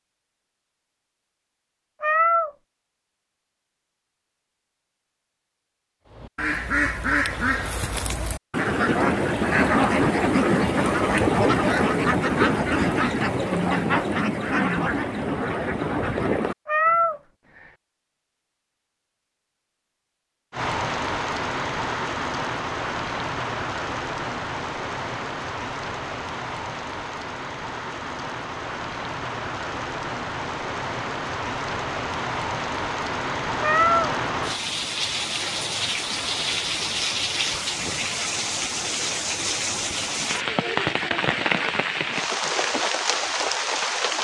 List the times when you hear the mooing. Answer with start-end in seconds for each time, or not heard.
not heard.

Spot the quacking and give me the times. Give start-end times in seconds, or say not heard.
6.1-17.1.